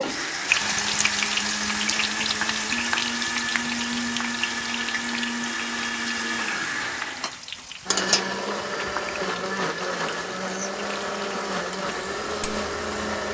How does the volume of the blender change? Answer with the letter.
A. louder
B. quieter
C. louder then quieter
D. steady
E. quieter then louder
D.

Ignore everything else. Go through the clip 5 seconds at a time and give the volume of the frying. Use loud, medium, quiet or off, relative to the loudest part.
loud, medium, quiet.